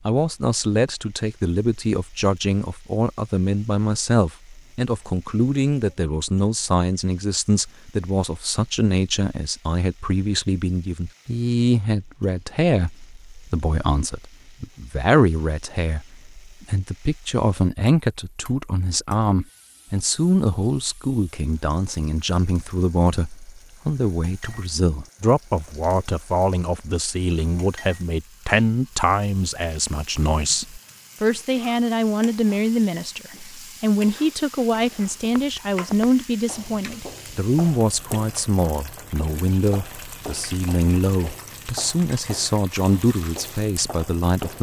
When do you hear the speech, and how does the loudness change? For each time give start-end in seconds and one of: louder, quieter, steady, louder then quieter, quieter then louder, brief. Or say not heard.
0.1-44.5 steady.